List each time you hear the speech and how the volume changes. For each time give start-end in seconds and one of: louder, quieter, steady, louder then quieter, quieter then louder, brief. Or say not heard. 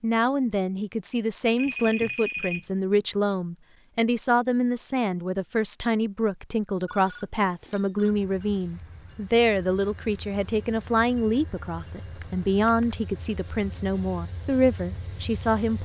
0.0-15.8 steady.